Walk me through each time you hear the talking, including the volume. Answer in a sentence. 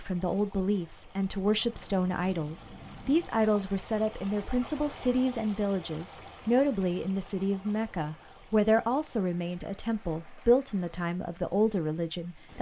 The talking can be heard from 0.0 to 12.5 s, at a steady volume.